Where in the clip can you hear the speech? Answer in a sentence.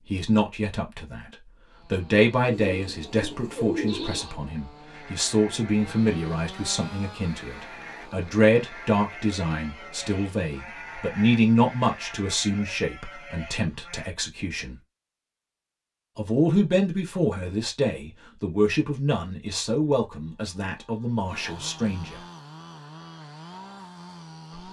The speech can be heard from 0.1 to 14.8 s and from 16.1 to 22.2 s.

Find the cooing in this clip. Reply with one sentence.
You can hear the cooing from 2.5 to 4.2 s.